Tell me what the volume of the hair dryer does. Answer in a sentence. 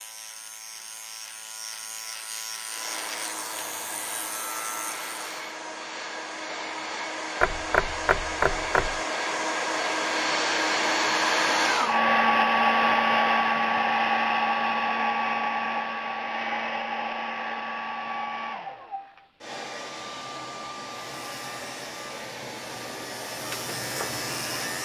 The loudness of the hair dryer goes up, then down.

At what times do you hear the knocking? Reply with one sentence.
The knocking can be heard from 7.4 to 9.0 s.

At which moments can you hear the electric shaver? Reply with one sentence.
The electric shaver can be heard from 0.0 to 5.3 s and from 20.9 to 24.7 s.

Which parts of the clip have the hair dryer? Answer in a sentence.
The hair dryer can be heard from 2.6 to 24.7 s.